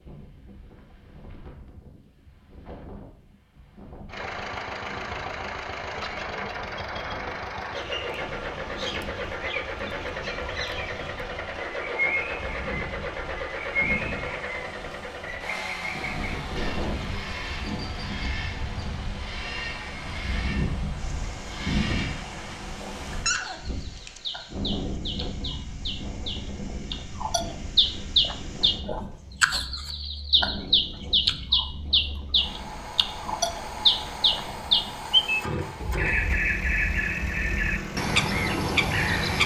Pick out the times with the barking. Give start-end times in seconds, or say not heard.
23.1-24.2.